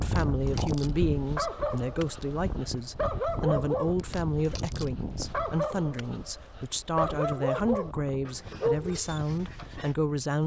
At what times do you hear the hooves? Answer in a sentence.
You can't hear the hooves here.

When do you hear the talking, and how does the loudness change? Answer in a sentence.
The talking can be heard from 0.0 to 10.4 s, at a steady volume.